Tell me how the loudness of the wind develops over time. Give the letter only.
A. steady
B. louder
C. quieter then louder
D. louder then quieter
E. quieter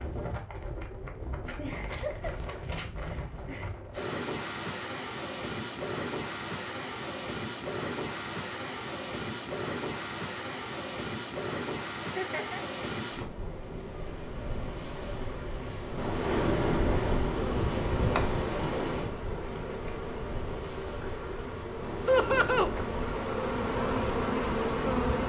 D.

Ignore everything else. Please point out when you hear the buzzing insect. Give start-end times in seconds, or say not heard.
17.3-25.2.